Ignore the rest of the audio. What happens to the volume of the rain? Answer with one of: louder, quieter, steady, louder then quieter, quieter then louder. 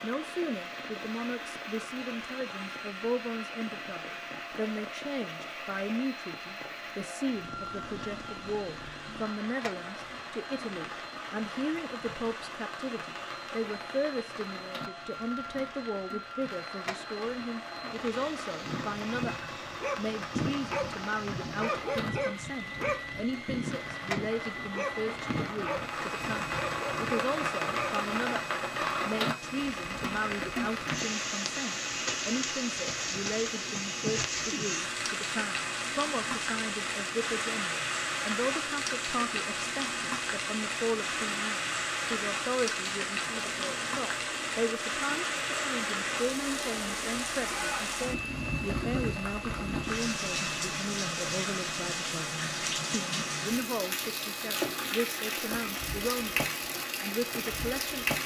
louder.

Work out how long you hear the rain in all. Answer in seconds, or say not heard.
58 s.